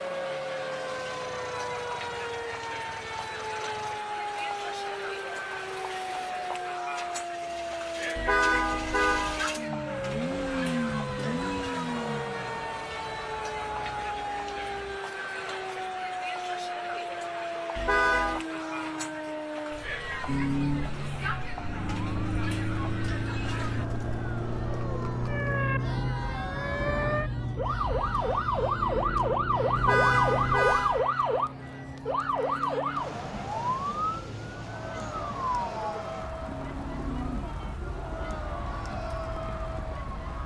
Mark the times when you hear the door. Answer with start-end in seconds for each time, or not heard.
not heard.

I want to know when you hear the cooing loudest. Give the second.
37 s.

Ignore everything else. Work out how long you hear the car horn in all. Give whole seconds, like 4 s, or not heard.
3 s.